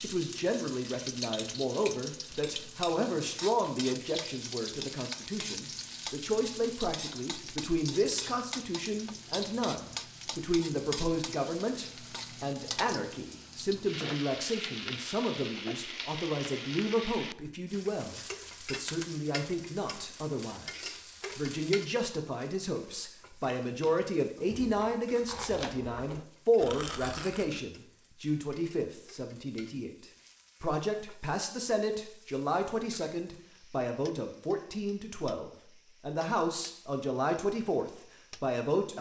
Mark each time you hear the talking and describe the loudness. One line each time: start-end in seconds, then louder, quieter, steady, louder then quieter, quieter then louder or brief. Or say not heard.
0.0-38.9 steady.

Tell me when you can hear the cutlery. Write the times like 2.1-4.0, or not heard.
not heard.